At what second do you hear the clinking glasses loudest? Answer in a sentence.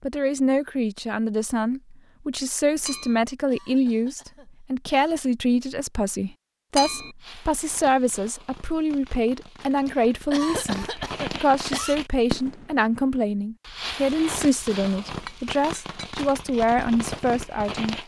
The volume of the clinking glasses peaks at 7 seconds.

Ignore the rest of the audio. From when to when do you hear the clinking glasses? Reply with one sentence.
You can hear the clinking glasses from 2.8 to 3.2 s, from 6.8 to 7.2 s and from 15.1 to 16.1 s.